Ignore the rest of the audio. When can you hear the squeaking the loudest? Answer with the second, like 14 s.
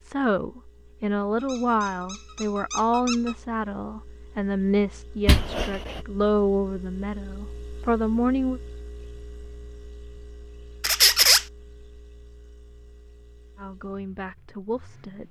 11 s.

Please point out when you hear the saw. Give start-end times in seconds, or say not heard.
not heard.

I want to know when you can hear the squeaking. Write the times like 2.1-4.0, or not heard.
1.4-3.4, 5.2-6.0, 10.8-11.4.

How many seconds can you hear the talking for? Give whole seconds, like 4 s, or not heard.
10 s.